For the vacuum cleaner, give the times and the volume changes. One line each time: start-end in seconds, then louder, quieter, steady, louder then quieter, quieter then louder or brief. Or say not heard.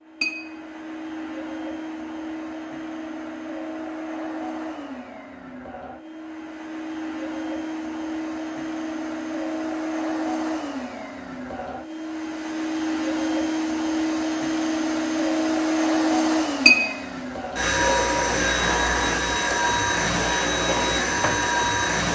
0.0-22.1 louder.